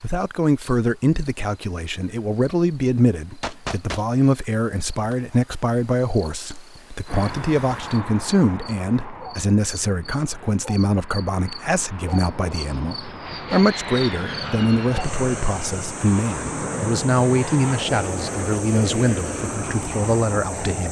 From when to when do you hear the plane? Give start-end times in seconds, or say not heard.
7.0-20.8.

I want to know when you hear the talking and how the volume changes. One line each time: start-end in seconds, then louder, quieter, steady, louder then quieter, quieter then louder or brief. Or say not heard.
0.0-20.8 steady.